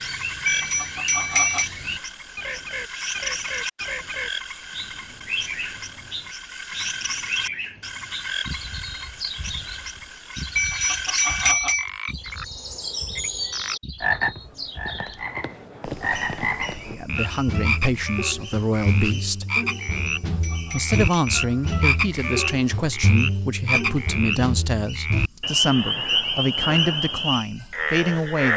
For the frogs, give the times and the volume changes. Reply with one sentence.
The frogs can be heard from 0.0 to 28.5 s, getting louder.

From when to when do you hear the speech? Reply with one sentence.
The speech can be heard from 16.9 to 19.4 s and from 20.7 to 28.5 s.